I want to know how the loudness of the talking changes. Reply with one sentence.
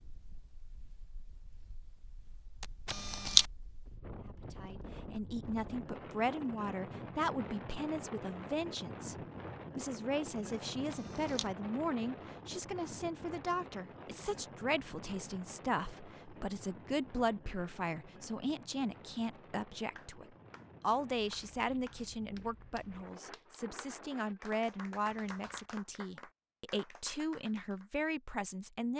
The volume of the talking stays about the same.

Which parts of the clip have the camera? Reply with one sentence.
The camera can be heard from 2.6 to 3.5 s, from 10.9 to 11.5 s and from 25.1 to 25.6 s.